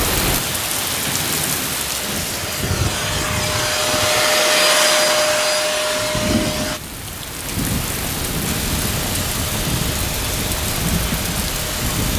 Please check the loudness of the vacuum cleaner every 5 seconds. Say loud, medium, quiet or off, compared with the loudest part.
loud, loud, medium.